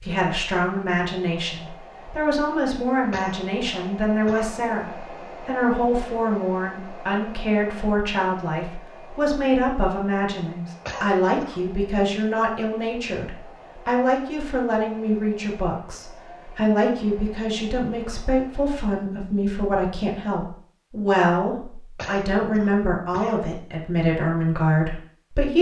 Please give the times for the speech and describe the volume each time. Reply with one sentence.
The speech can be heard from 0.0 to 25.5 s, at a steady volume.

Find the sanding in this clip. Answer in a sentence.
The sanding can't be heard in this clip.